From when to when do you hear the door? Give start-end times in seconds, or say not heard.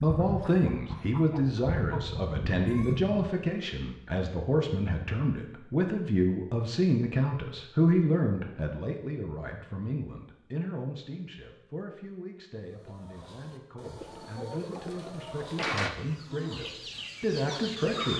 14.5-15.9.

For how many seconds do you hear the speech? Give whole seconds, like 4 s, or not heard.
18 s.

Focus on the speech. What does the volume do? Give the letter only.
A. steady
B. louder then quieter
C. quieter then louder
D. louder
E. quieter
C.